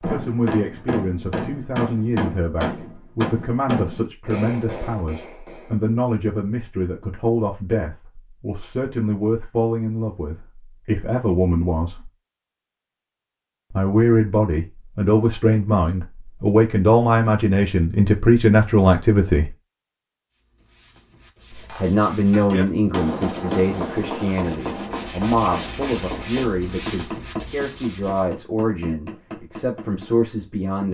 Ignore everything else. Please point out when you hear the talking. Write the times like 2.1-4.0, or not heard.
0.0-12.1, 13.7-19.6, 21.6-30.9.